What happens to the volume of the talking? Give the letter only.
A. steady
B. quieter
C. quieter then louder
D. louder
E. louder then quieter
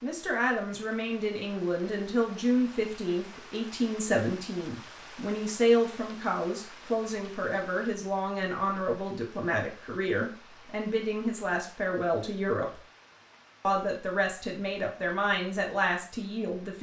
A.